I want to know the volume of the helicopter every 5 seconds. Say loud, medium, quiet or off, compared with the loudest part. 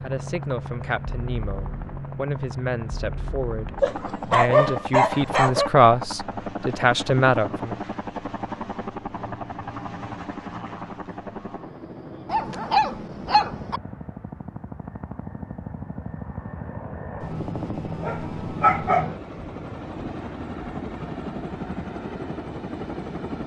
loud, loud, medium, loud, loud.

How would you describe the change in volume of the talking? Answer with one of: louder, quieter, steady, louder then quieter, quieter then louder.
louder.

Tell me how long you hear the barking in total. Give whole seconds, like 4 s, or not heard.
5 s.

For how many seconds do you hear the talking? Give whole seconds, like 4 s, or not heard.
8 s.